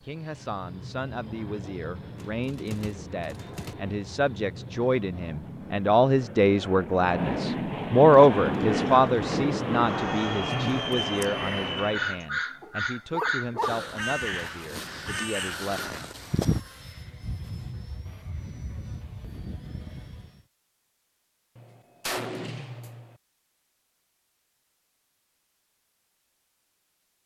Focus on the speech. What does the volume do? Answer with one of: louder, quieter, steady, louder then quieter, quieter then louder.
louder then quieter.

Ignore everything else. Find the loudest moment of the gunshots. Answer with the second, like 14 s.
22 s.